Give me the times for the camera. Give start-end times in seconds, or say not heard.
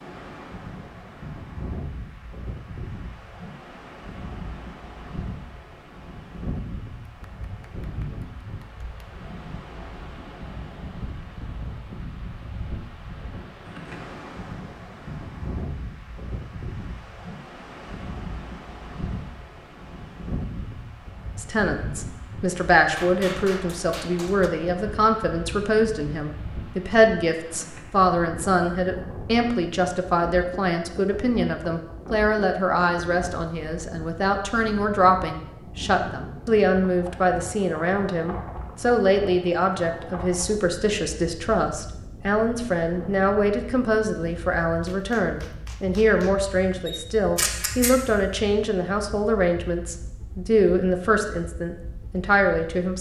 46.9-47.9.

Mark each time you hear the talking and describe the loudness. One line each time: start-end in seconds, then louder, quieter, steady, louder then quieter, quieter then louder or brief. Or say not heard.
21.4-52.9 steady.